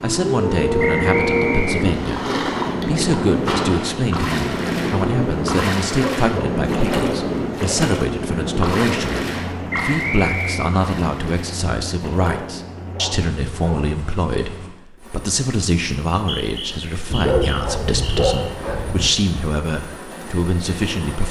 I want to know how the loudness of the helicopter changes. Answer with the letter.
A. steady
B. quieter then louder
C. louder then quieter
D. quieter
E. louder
D.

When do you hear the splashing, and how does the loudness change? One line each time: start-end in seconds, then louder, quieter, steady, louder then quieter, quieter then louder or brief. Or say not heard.
1.8-12.6 quieter.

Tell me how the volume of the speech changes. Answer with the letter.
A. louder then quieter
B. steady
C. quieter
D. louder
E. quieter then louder
B.